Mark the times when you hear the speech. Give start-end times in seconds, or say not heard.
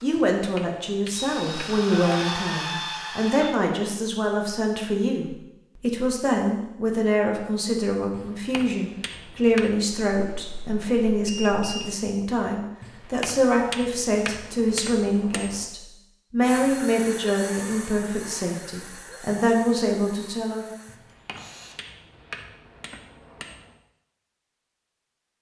0.0-20.6.